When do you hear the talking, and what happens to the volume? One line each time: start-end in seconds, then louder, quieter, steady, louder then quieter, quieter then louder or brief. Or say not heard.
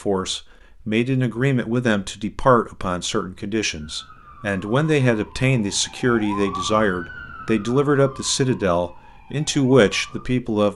0.0-10.7 steady.